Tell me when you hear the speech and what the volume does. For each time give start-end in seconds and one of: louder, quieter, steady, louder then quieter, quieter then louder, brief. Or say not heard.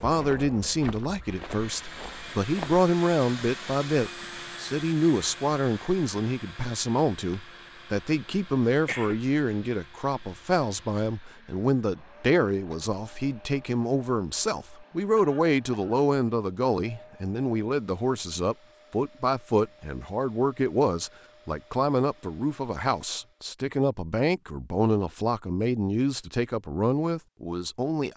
0.0-28.1 steady.